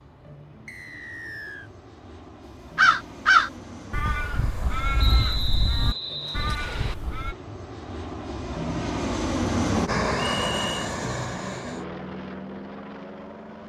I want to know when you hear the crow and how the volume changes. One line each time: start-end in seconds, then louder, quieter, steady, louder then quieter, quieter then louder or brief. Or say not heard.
2.8-7.3 quieter.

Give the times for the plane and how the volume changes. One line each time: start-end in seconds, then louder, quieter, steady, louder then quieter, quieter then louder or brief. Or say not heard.
0.0-13.6 louder then quieter.